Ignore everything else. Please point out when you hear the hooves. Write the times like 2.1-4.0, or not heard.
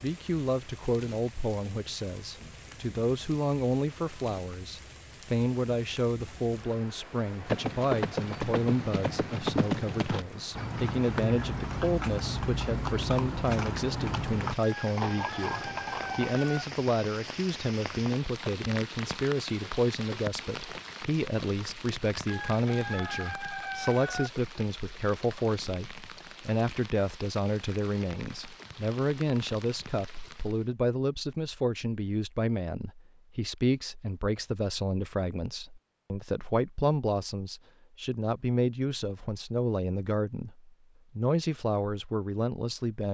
7.5-16.3.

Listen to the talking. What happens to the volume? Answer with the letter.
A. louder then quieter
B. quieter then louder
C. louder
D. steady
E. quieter
D.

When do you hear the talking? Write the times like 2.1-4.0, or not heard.
0.0-43.1.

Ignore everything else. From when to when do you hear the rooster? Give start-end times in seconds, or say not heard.
14.6-16.6, 22.2-24.3.